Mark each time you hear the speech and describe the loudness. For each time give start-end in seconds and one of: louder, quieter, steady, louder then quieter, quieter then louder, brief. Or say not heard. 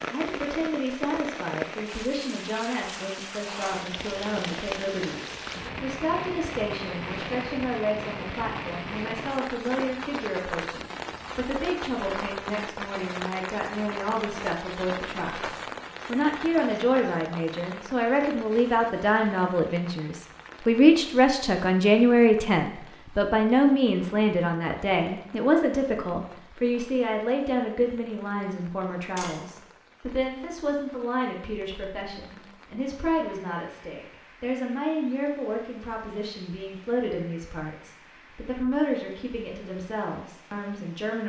0.1-41.2 louder then quieter.